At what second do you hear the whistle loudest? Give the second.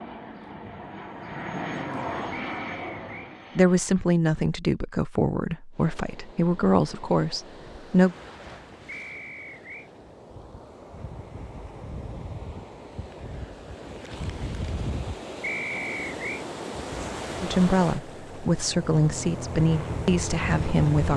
16 s.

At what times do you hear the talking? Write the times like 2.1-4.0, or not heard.
3.5-8.2, 17.4-21.1.